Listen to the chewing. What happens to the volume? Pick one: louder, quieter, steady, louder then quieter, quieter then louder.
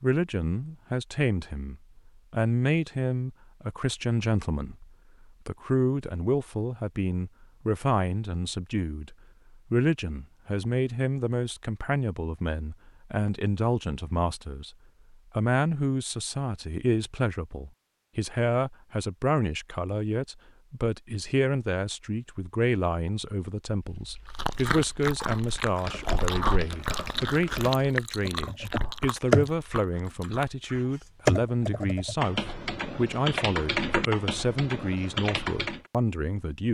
quieter.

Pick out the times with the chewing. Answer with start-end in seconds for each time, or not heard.
24.3-30.4.